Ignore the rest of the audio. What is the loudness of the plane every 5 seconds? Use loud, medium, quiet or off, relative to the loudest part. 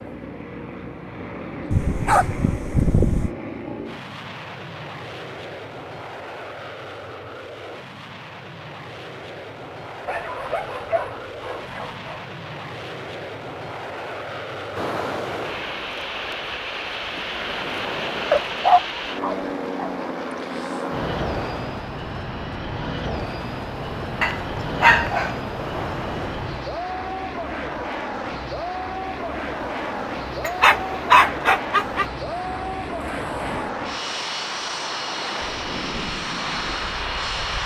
medium, medium, medium, loud, loud, loud, loud, loud.